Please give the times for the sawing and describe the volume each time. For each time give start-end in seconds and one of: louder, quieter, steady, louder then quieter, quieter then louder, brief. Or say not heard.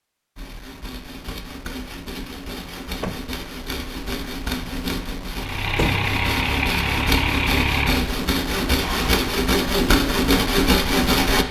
0.3-11.4 louder.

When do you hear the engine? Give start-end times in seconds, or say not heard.
5.3-9.2.